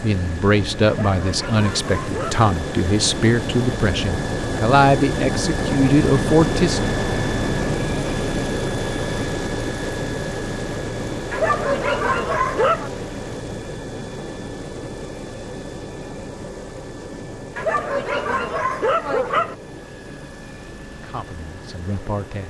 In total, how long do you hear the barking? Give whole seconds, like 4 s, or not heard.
5 s.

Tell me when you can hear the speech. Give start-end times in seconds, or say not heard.
0.0-7.0, 20.9-22.4.